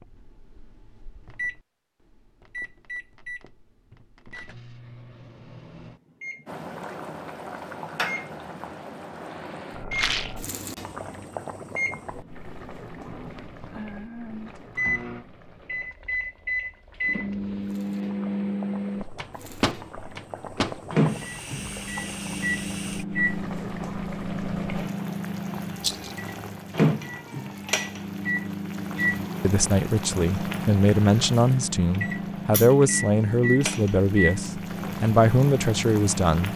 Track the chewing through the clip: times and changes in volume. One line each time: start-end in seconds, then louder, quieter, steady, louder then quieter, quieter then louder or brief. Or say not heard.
not heard.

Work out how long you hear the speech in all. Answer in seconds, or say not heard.
7 s.